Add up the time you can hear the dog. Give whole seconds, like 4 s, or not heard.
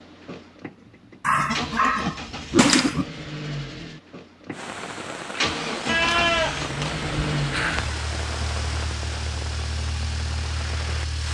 2 s.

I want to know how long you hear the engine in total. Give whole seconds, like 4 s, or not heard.
11 s.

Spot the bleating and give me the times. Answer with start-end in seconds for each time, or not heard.
1.4-3.2, 5.8-7.9.